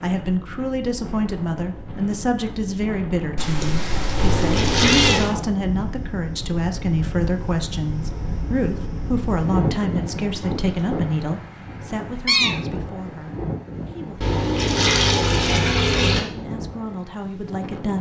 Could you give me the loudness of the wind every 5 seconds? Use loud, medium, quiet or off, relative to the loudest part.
medium, loud, loud, medium.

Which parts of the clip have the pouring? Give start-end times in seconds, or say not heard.
4.2-5.3, 14.2-16.2.